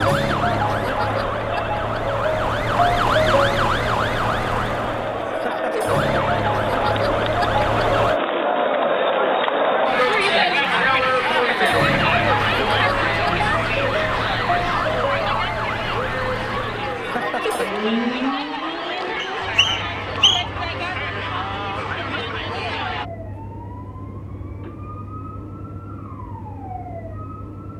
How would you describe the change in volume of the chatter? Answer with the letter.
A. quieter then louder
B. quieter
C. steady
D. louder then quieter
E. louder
D.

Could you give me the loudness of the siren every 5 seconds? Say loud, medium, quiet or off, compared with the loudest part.
loud, loud, loud, medium, quiet, quiet.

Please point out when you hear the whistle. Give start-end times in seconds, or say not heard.
19.1-20.4.